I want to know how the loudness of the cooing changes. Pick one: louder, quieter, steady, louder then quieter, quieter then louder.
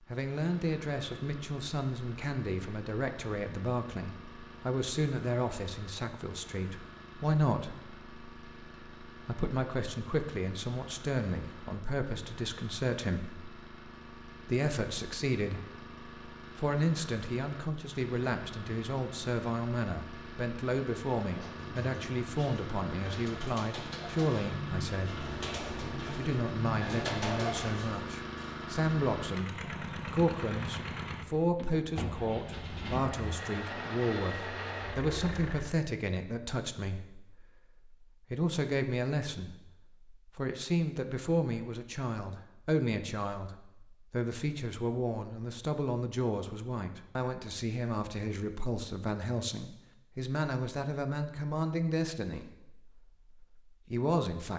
louder.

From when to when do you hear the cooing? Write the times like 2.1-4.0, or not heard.
21.2-28.6.